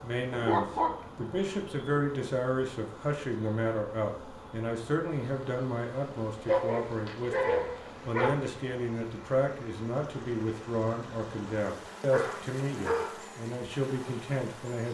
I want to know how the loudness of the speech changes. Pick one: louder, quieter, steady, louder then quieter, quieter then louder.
steady.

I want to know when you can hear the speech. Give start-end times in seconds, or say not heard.
0.0-14.8.